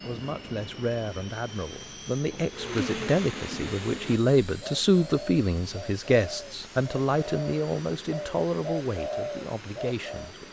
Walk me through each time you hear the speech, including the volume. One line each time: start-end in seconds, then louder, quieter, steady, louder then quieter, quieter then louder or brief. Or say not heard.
0.0-10.4 louder then quieter.